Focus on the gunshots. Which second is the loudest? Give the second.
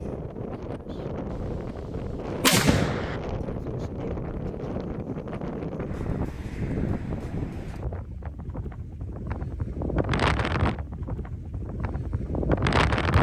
3 s.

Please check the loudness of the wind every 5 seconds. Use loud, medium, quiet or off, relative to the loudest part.
medium, medium, loud.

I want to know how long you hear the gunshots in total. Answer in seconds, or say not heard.
2 s.